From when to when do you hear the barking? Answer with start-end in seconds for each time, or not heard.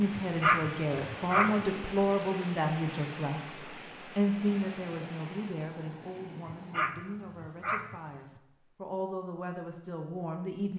0.1-1.6, 6.5-8.4.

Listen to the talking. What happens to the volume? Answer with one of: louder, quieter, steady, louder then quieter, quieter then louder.
quieter then louder.